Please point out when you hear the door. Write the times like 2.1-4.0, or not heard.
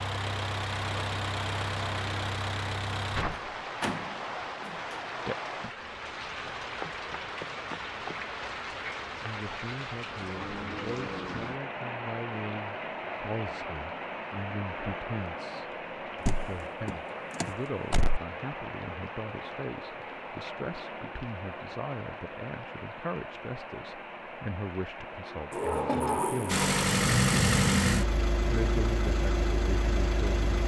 3.8-5.0, 16.2-18.2, 25.5-26.9.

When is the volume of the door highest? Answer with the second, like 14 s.
26 s.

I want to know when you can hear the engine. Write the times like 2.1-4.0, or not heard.
0.0-3.2, 26.4-30.6.